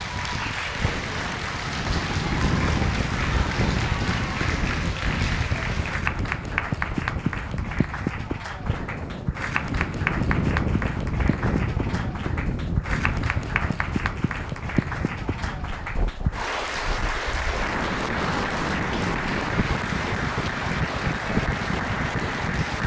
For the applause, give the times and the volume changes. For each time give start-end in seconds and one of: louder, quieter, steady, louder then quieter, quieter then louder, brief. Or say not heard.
0.0-22.8 steady.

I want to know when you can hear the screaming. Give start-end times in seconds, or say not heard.
not heard.